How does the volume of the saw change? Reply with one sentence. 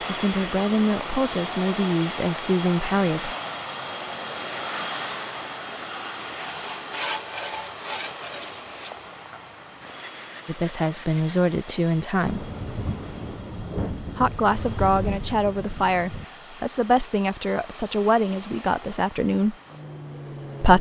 The loudness of the saw goes down.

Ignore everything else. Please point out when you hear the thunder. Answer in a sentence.
The thunder can be heard from 12.2 to 16.2 s.